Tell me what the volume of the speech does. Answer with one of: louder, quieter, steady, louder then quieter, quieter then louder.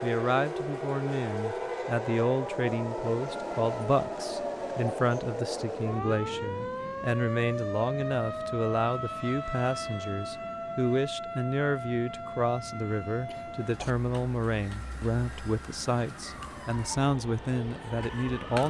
steady.